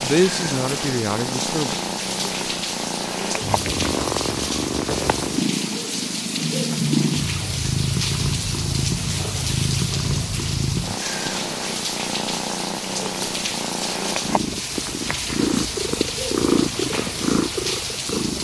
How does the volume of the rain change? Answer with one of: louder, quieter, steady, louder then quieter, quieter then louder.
steady.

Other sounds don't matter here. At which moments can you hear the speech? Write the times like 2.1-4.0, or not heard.
0.0-1.8.